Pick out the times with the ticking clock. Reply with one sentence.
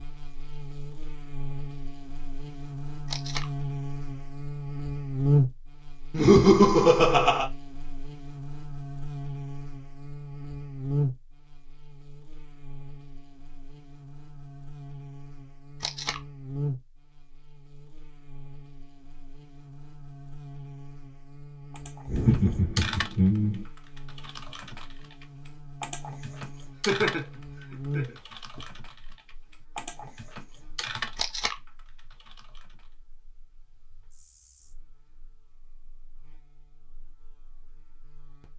The ticking clock can't be heard in this clip.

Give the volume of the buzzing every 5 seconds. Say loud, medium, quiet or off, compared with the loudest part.
medium, loud, medium, medium, medium, medium, quiet, quiet.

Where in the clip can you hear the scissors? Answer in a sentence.
The scissors can't be heard in this clip.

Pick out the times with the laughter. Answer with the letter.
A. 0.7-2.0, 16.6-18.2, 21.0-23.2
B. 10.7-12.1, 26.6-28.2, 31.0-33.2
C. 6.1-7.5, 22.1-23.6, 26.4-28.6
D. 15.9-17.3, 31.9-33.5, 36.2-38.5
C.